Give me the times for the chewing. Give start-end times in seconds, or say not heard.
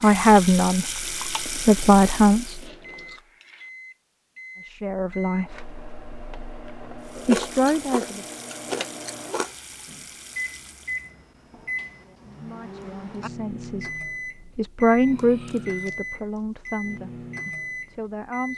1.0-3.2, 7.2-9.6, 15.2-16.6.